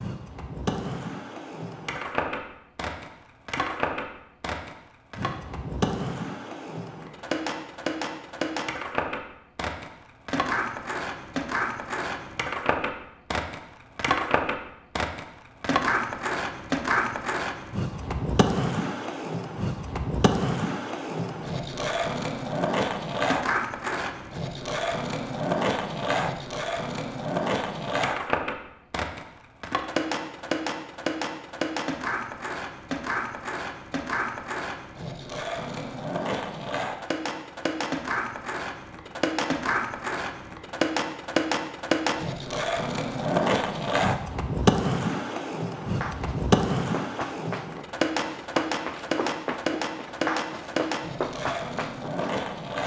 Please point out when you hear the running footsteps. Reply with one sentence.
You can hear the running footsteps from 45.8 to 52.4 s.